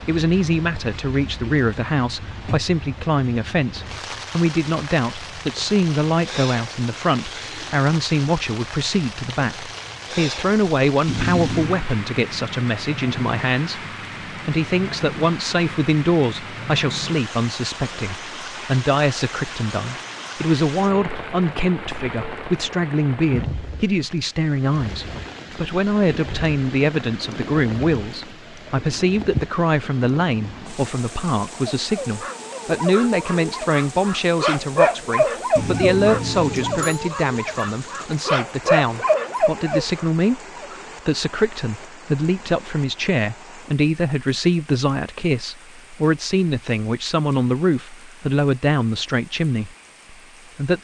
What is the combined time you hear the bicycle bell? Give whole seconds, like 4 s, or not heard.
2 s.